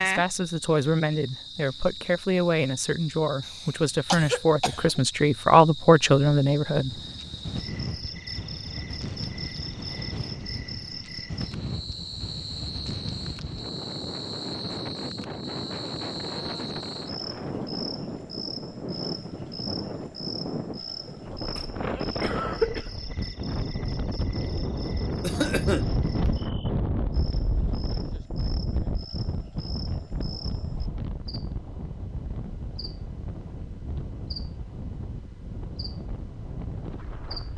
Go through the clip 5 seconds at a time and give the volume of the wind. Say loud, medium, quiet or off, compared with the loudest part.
off, medium, medium, loud, loud, loud, medium, medium.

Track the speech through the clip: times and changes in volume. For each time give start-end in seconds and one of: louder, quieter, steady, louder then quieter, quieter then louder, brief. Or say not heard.
0.0-7.0 louder.